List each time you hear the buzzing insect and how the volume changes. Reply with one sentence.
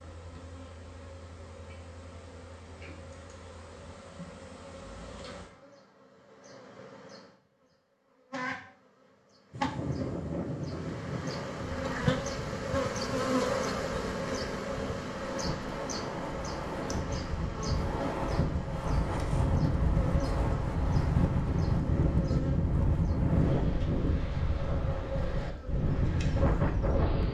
The buzzing insect can be heard from 0.0 to 27.2 s, getting louder then quieter.